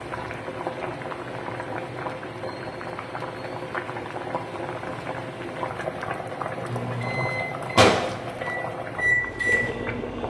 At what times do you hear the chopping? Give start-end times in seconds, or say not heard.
not heard.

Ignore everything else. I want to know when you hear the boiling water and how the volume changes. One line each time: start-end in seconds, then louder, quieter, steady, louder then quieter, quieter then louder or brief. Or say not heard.
0.0-10.2 steady.